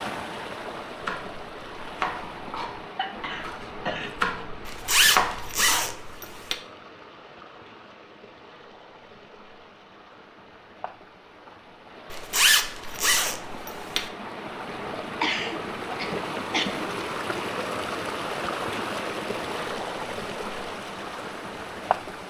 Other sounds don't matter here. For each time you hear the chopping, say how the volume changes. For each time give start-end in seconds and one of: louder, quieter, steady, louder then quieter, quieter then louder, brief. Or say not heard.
0.9-6.0 quieter then louder.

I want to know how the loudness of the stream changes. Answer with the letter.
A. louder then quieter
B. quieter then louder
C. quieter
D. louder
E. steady
B.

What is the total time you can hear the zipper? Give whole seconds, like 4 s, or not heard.
4 s.